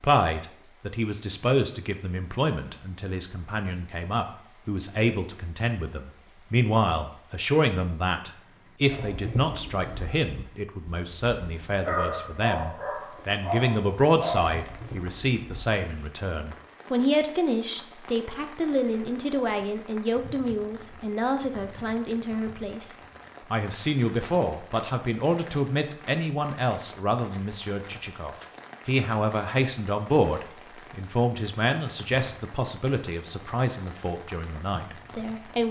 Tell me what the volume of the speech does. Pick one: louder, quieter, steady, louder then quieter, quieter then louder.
steady.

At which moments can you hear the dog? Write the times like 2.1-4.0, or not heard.
8.9-15.7.